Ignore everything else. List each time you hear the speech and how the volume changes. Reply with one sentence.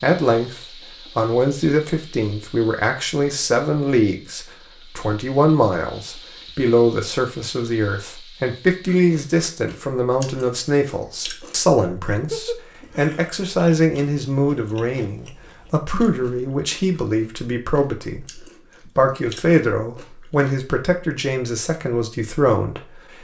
You can hear the speech from 0.0 to 23.2 s, at a steady volume.